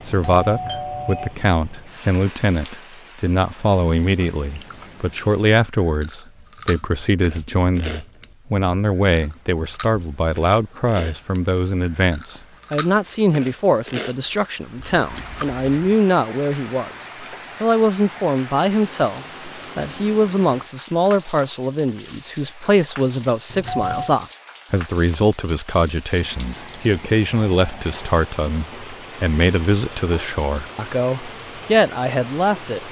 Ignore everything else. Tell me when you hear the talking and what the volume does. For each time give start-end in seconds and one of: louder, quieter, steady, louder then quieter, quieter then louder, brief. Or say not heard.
0.0-32.8 steady.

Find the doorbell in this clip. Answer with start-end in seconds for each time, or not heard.
0.1-1.4, 23.5-24.1.